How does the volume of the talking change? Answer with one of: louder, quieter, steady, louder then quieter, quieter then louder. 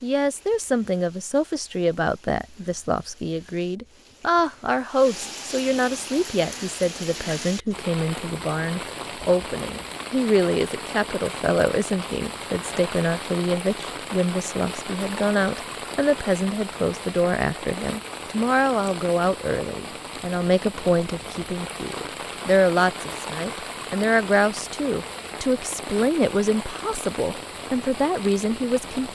steady.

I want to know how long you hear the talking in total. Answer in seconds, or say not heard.
29 s.